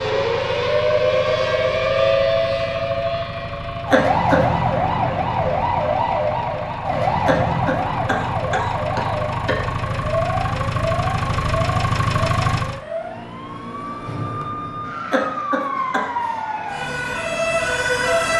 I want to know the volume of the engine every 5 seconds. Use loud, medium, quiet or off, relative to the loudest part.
medium, medium, loud, off.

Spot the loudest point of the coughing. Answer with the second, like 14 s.
4 s.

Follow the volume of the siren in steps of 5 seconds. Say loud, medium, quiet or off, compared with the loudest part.
loud, loud, medium, loud.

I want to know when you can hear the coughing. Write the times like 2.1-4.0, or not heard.
3.9-4.5, 7.2-9.6, 15.1-16.1.